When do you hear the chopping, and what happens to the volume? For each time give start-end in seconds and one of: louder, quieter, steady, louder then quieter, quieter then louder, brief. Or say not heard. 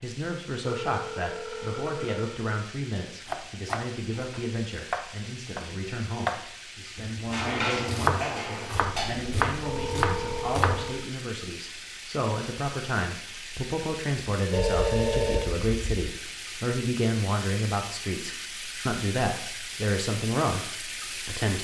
3.2-10.8 quieter then louder.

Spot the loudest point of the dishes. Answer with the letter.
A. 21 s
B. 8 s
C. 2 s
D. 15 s
B.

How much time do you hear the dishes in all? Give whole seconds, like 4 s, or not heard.
2 s.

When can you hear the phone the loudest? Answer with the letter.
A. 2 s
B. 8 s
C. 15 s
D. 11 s
C.